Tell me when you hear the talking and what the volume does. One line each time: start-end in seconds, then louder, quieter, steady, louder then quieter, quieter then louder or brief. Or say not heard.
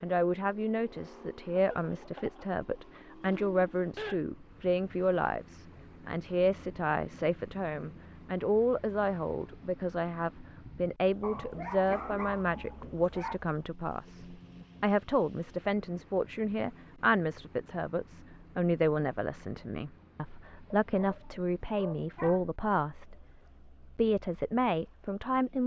0.0-25.6 steady.